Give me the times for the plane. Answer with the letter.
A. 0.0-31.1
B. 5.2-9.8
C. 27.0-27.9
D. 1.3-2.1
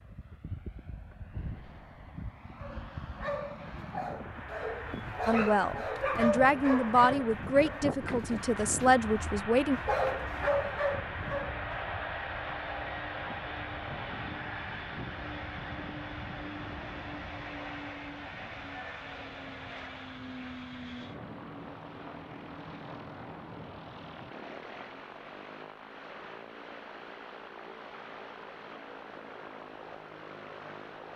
A.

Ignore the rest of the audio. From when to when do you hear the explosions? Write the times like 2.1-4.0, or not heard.
1.3-2.1.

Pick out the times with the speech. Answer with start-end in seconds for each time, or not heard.
5.2-9.8.